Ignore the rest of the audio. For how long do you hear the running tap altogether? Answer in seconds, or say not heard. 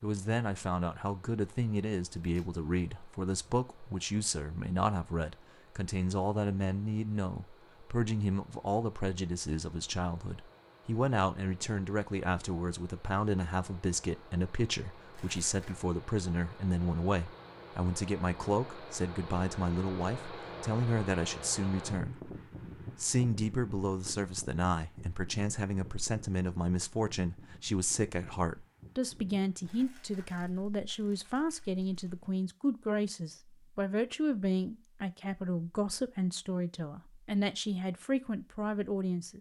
not heard.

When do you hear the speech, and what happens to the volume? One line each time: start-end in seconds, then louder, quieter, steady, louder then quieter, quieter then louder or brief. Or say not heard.
0.0-22.3 steady
23.0-39.3 steady.